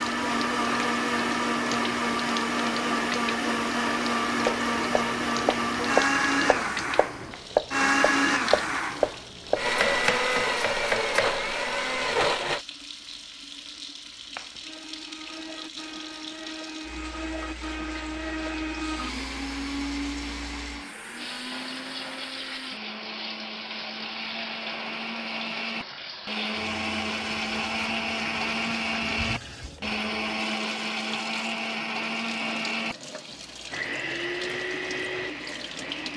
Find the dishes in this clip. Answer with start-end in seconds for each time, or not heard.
not heard.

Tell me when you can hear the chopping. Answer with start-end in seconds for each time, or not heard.
4.5-11.4.